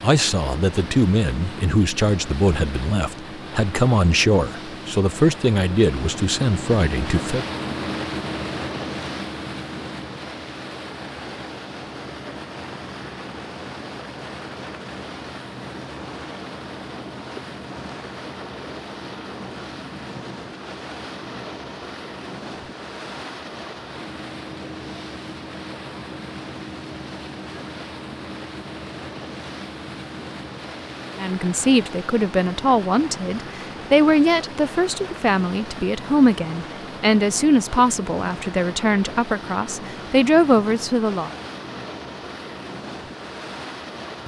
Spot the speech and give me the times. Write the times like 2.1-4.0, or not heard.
0.0-7.5, 31.1-41.3.